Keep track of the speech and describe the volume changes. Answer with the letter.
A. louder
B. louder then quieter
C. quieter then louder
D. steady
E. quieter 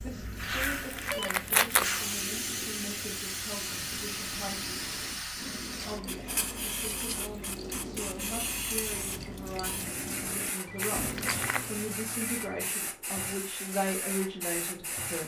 A.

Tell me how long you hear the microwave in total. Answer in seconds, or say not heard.
not heard.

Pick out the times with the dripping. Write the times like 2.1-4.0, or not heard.
0.0-11.8.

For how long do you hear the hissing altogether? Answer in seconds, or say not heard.
15 s.